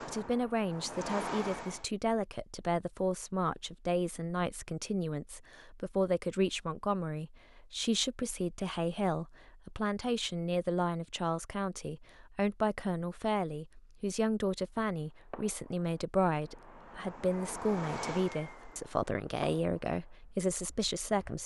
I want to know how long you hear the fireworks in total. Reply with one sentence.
The fireworks can be heard for 8 seconds in total.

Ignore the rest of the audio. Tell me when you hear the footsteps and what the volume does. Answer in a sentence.
The footsteps can't be heard in this clip.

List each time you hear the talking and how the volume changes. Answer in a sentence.
You can hear the talking from 0.1 to 21.4 s, at a steady volume.